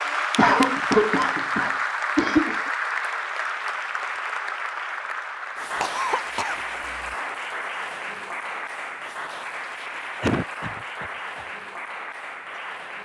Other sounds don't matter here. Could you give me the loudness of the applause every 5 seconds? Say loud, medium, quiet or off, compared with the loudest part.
loud, medium, medium.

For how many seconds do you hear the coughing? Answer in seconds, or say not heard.
5 s.